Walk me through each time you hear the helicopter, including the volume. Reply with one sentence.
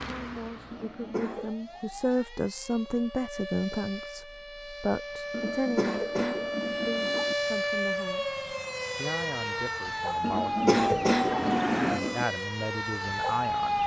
You can't hear the helicopter here.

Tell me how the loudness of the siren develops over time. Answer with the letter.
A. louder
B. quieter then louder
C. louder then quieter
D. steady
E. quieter
A.